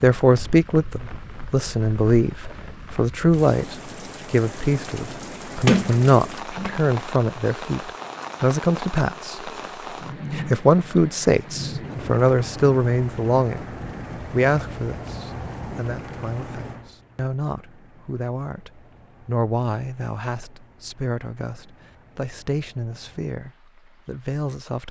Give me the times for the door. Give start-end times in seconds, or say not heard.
5.7-6.8.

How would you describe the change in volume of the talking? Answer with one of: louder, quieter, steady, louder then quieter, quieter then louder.
quieter.